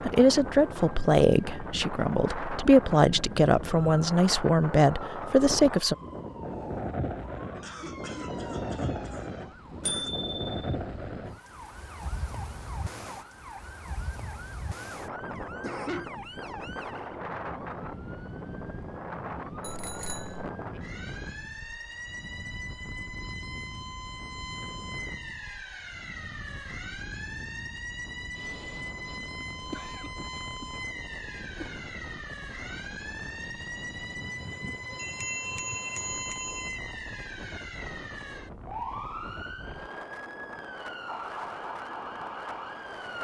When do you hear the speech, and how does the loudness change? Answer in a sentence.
The speech can be heard from 0.0 to 6.0 s, getting quieter then louder.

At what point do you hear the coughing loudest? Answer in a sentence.
The loudest moment of the coughing is at 16 seconds.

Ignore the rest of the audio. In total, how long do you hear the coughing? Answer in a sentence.
You can hear the coughing for 5 seconds altogether.